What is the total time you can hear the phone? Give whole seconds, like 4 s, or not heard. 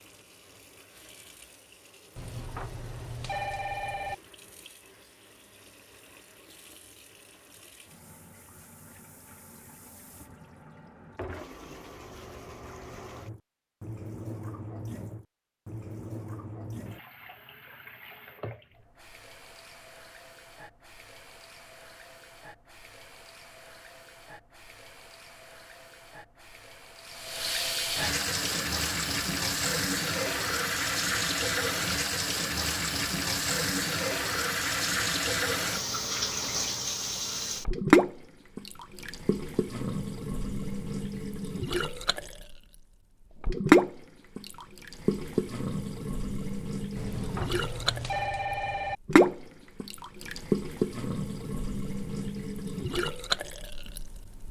4 s.